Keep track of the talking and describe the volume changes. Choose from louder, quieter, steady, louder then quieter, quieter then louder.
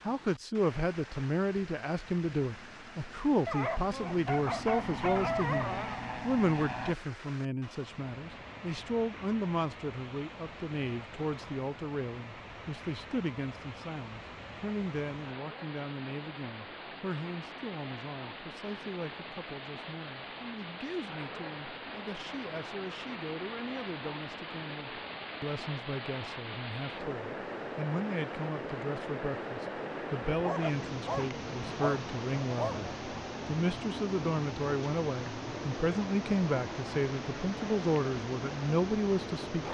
quieter then louder.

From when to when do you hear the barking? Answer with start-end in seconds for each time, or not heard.
3.5-6.0, 30.3-32.9.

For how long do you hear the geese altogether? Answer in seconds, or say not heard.
not heard.